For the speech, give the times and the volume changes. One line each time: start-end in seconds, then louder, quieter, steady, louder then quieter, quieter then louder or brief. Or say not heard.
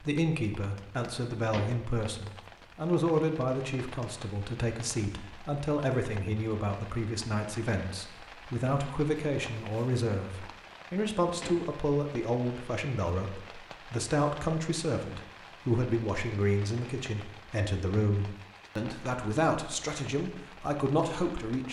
0.0-21.6 steady.